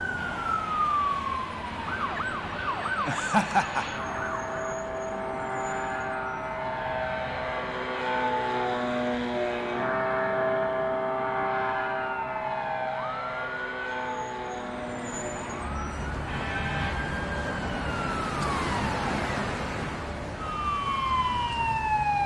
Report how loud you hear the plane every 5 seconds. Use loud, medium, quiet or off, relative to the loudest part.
medium, loud, loud, medium, quiet.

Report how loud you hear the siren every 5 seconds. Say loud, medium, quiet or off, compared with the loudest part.
loud, quiet, medium, loud, loud.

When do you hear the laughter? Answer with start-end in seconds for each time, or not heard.
3.0-3.9.